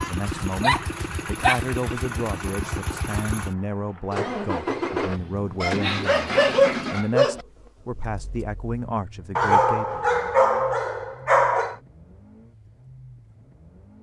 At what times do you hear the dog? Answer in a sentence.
The dog can be heard from 0.3 to 1.6 s, from 5.6 to 7.5 s and from 9.3 to 11.8 s.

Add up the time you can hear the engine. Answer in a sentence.
The engine can be heard for 14 seconds in total.